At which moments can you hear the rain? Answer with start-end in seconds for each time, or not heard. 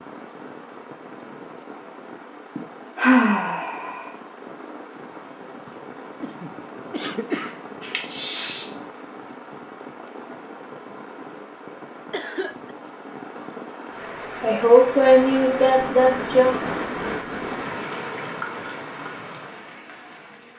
0.0-20.5.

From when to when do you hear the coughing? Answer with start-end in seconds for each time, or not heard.
6.2-7.5, 12.1-12.8.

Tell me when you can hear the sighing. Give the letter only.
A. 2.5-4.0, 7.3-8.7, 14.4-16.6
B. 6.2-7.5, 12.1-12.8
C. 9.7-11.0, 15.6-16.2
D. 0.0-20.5
A.